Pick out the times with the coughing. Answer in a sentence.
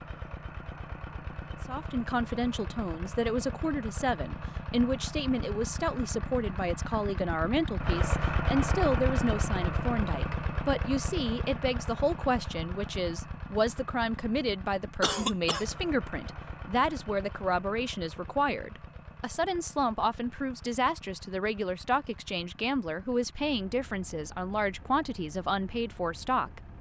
You can hear the coughing from 15.0 to 15.7 s.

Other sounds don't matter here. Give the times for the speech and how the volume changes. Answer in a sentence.
The speech can be heard from 1.6 to 26.6 s, at a steady volume.